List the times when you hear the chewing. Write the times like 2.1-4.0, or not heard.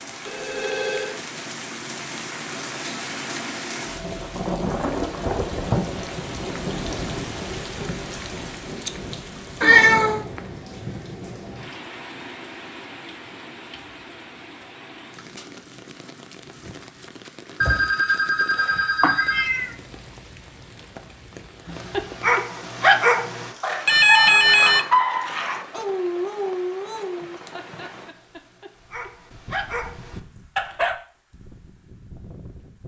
not heard.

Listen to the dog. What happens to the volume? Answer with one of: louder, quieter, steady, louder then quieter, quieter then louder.
quieter then louder.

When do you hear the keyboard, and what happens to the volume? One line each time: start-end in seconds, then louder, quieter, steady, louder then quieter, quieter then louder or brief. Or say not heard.
not heard.